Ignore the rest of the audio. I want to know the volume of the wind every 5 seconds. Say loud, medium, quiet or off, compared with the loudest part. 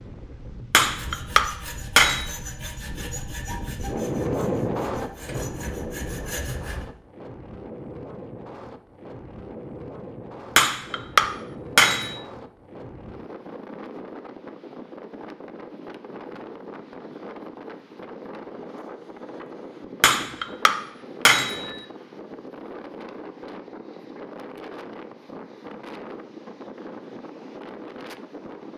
loud, medium, medium, medium, medium, medium.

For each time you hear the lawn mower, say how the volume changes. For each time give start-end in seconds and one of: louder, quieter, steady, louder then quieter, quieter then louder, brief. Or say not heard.
not heard.